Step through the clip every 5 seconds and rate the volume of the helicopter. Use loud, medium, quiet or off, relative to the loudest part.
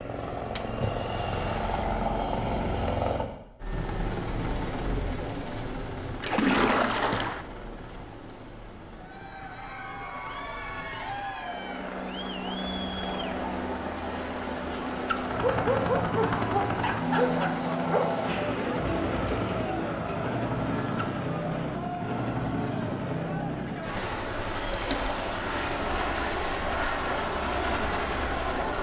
loud, medium, medium, loud, loud, loud.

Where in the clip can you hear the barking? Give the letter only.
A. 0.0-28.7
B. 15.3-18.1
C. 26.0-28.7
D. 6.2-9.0
B.